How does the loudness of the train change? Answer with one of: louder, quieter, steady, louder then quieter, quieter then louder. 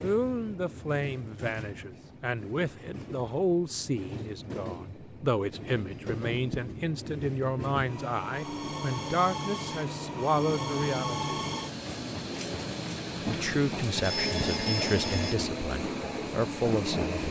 louder.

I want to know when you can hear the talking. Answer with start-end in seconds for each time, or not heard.
0.0-11.3, 13.2-17.2.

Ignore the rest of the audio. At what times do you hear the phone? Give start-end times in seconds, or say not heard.
5.9-6.8, 13.3-15.3.